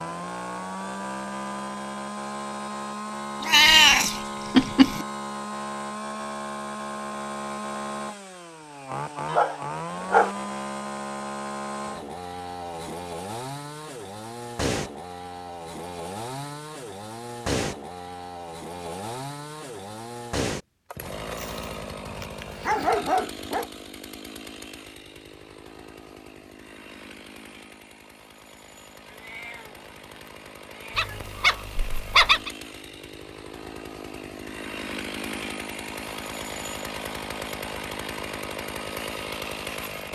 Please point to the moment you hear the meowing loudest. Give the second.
4 s.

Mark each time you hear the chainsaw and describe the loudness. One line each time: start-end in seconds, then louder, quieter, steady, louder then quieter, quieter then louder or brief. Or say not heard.
0.0-40.0 quieter then louder.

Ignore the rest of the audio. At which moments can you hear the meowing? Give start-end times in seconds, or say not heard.
3.4-5.0, 29.1-31.4.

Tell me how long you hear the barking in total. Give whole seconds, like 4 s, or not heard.
5 s.